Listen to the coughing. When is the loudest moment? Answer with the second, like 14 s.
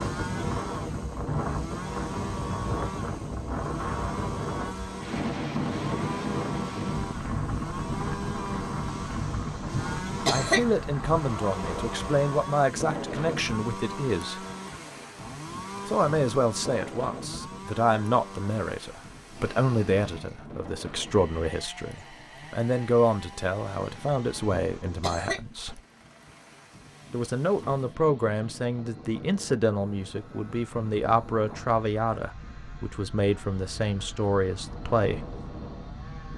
10 s.